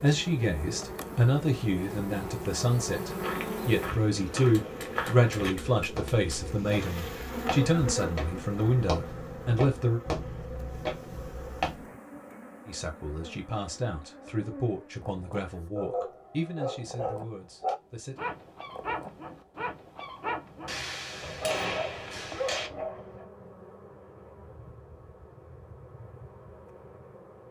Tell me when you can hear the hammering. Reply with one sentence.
The hammering can be heard from 4.5 to 6.5 s and from 20.6 to 22.7 s.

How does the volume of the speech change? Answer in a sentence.
The volume of the speech goes down.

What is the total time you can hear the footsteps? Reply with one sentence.
You can hear the footsteps for 9 seconds altogether.